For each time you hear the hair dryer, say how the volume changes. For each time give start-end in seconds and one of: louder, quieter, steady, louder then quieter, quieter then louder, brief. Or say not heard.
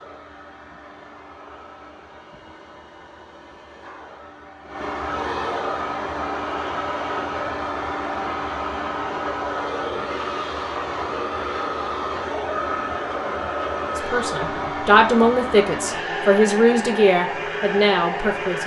0.0-18.6 louder.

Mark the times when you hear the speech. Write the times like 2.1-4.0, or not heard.
13.9-18.6.